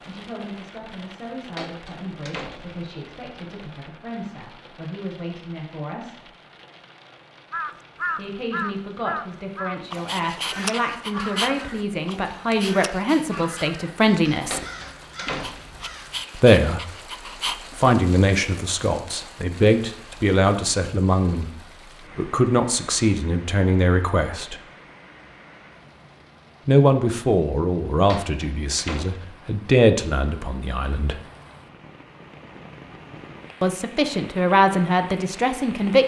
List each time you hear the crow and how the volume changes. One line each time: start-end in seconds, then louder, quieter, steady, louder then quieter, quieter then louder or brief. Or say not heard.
7.5-16.2 quieter.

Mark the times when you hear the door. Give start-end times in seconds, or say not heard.
1.6-2.9, 14.5-15.8, 28.1-29.4.